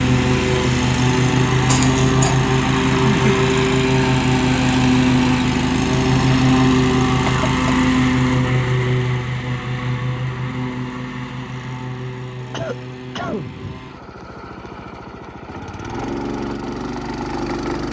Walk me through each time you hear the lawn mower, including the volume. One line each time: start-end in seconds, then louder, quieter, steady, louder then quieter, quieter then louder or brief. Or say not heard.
0.0-17.8 quieter.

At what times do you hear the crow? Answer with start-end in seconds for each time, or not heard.
not heard.